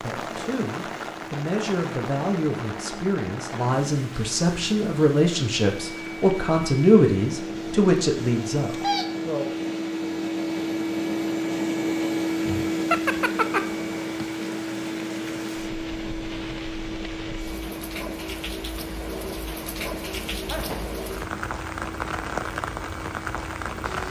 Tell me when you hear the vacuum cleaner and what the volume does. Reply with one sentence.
The vacuum cleaner can be heard from 0.1 to 24.0 s, getting louder then quieter.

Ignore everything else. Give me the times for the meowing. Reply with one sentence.
The meowing can be heard from 12.4 to 13.6 s.